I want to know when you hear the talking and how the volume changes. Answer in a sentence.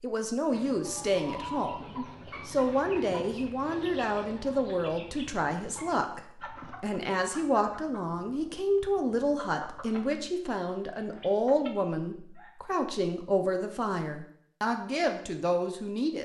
You can hear the talking from 0.0 to 16.2 s, at a steady volume.